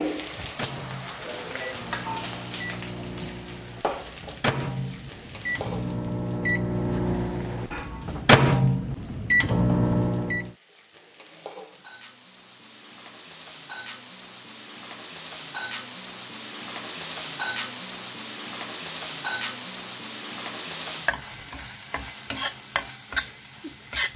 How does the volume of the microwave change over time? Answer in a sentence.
The loudness of the microwave goes up.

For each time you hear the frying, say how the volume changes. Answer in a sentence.
You can hear the frying from 0.0 to 24.1 s, getting quieter then louder.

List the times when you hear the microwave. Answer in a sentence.
You can hear the microwave from 0.0 to 10.5 s.